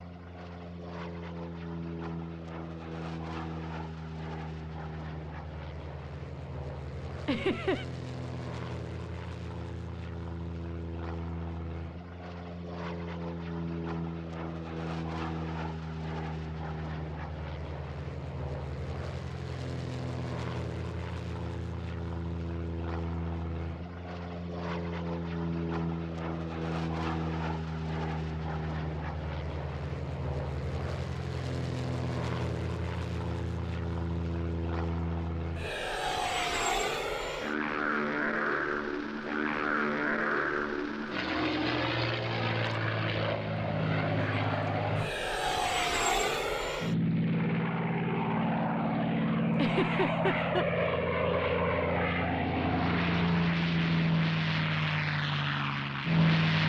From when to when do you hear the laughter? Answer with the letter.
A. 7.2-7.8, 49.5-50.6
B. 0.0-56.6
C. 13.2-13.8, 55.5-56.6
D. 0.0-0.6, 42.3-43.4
A.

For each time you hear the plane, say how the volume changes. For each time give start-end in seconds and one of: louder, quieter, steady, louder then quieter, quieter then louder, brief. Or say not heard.
0.0-56.6 louder.